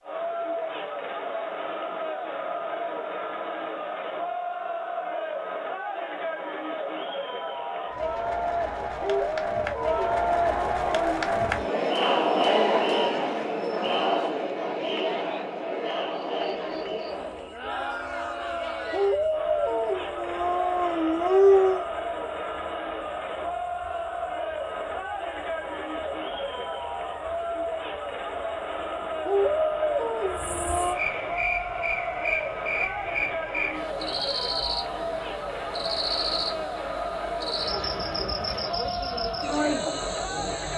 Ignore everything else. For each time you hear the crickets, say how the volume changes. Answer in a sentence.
You can hear the crickets from 16.2 to 40.7 s, getting louder.